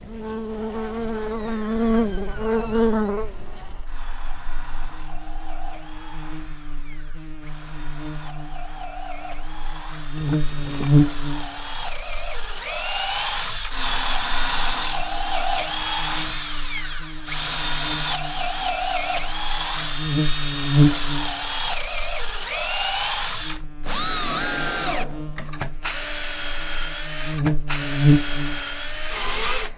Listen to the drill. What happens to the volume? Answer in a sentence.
The loudness of the drill goes up.